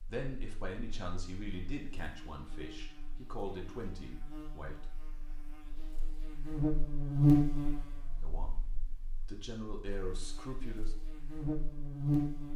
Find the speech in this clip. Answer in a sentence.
The speech can be heard from 0.1 to 4.8 s and from 8.2 to 10.9 s.